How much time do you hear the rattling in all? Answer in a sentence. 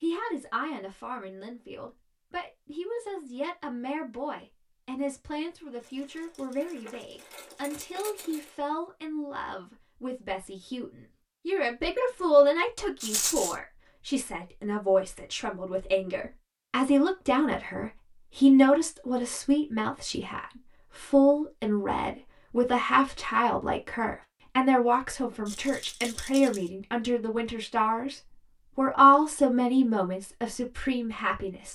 The rattling can be heard for 4 seconds in total.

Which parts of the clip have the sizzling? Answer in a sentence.
You can't hear the sizzling here.